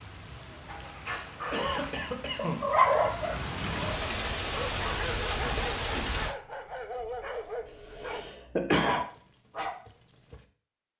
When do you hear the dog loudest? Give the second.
3 s.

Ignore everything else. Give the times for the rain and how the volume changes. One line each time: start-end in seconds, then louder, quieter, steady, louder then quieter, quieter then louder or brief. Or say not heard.
0.0-6.3 louder.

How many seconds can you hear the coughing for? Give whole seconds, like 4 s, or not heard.
2 s.